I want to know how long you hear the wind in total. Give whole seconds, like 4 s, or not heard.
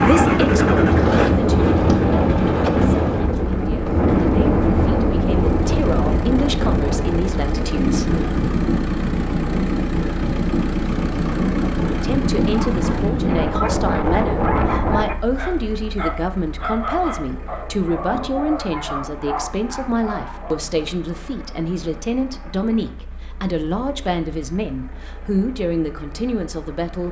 15 s.